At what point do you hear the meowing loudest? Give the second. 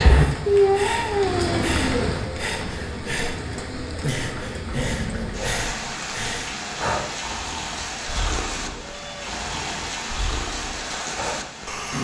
1 s.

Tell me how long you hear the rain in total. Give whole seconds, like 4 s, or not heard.
12 s.